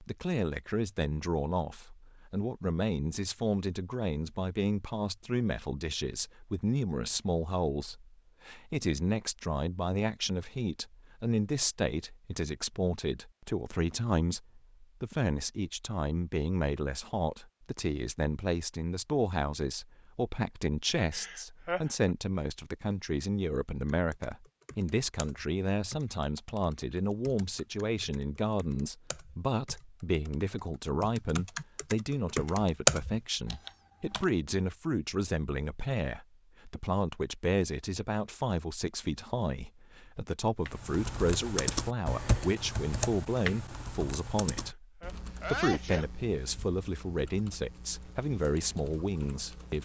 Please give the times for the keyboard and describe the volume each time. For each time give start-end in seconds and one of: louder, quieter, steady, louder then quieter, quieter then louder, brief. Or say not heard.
23.6-34.2 louder
40.6-49.7 quieter.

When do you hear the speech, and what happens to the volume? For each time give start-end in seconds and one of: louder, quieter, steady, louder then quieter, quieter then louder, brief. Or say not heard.
0.0-49.7 steady.